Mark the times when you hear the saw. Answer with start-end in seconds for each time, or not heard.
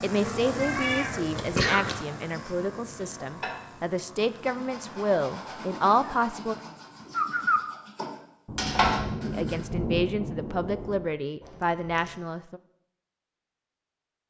2.3-9.7.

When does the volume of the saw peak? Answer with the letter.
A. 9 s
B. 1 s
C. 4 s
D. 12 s
A.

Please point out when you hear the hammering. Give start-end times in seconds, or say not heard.
not heard.